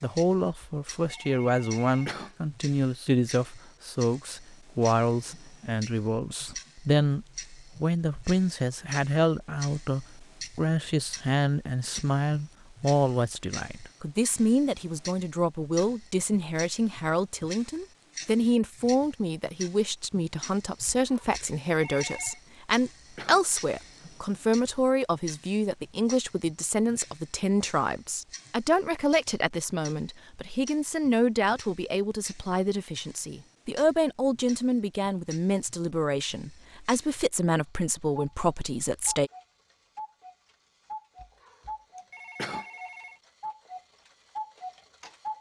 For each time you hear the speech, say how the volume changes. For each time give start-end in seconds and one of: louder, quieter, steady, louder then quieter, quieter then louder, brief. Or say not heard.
0.0-39.3 steady.